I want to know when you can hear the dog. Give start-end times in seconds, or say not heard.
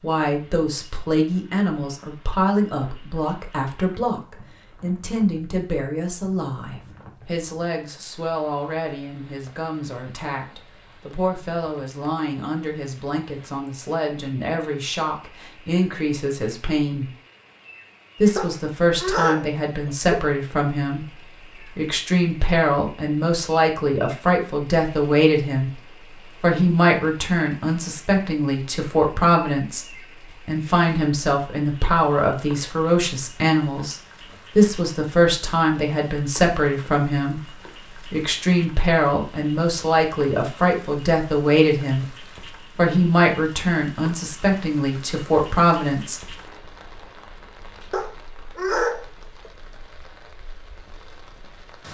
18.4-20.1, 47.9-49.5.